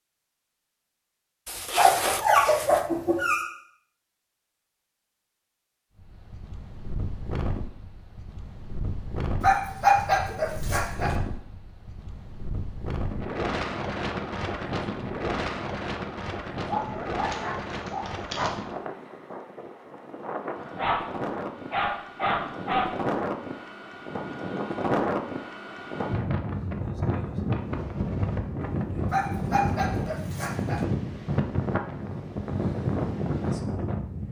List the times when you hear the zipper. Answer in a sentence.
The zipper can be heard from 1.4 to 2.9 s.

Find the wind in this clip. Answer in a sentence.
The wind can be heard from 6.0 to 34.2 s.